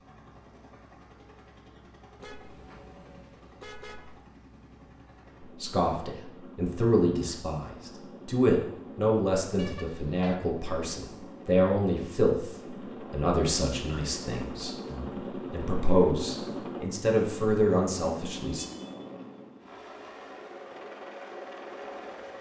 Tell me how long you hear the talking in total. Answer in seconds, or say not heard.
13 s.